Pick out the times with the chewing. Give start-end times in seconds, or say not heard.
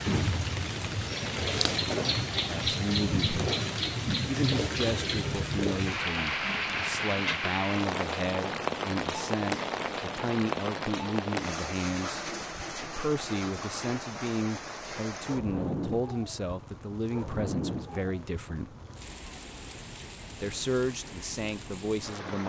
not heard.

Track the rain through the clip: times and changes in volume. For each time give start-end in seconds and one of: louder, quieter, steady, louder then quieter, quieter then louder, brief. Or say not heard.
0.0-22.4 quieter.